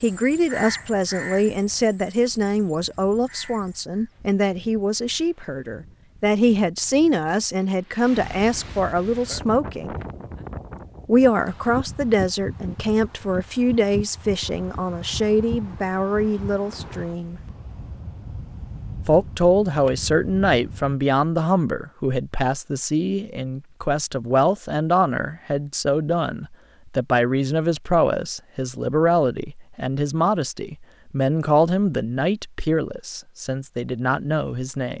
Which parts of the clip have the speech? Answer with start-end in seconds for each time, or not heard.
0.0-10.0, 11.1-17.4, 19.1-34.9.